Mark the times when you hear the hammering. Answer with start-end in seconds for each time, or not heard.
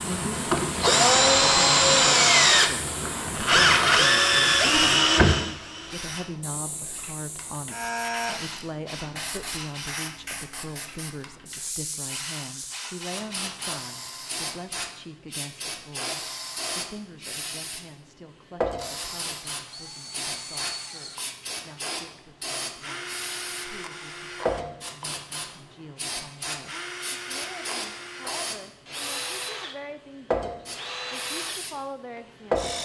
not heard.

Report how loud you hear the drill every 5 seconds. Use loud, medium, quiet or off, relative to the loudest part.
loud, medium, quiet, quiet, quiet, quiet, quiet.